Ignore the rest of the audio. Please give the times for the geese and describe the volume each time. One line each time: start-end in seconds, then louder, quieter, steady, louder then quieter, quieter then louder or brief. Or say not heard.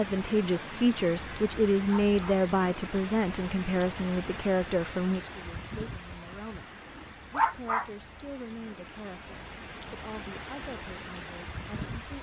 not heard.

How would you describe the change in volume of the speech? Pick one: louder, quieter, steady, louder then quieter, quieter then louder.
quieter.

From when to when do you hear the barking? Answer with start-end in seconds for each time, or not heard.
1.9-2.4, 7.3-7.9.